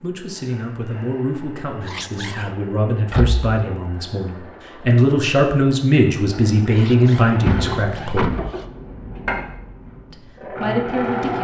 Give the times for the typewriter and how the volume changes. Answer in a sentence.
The typewriter can't be heard in this clip.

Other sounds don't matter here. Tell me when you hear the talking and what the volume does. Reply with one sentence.
You can hear the talking from 0.0 to 8.3 s, getting louder; and briefly from 10.1 to 11.4 s.